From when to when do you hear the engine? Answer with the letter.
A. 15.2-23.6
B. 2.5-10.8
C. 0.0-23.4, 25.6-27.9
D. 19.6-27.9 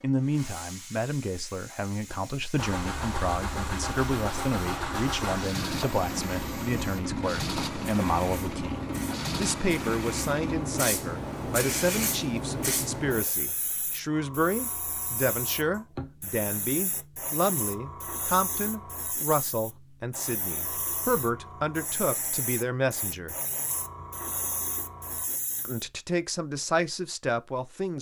B.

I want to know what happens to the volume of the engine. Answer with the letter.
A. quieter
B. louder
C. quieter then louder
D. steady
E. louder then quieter
D.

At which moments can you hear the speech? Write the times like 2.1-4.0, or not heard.
0.0-23.4, 25.6-27.9.